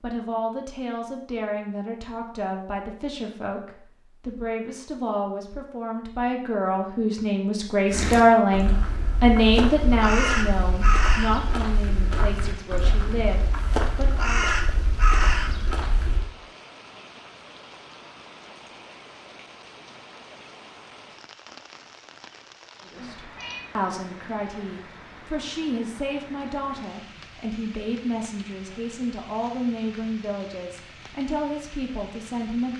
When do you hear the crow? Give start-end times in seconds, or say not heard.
7.9-16.2.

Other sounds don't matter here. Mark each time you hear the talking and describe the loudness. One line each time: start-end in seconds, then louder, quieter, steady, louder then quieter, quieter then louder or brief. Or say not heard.
0.0-14.6 louder then quieter
22.8-32.7 steady.